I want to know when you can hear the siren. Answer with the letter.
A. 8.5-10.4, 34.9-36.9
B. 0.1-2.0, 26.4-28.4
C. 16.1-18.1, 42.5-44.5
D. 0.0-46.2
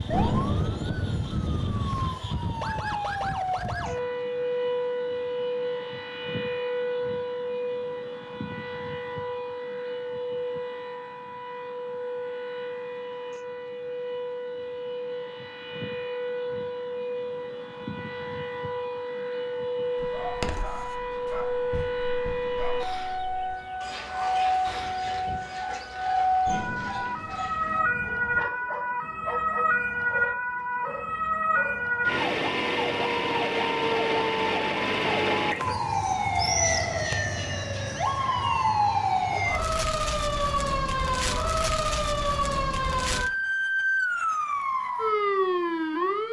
D.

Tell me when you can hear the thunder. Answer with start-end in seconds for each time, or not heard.
0.1-2.0, 26.4-28.4.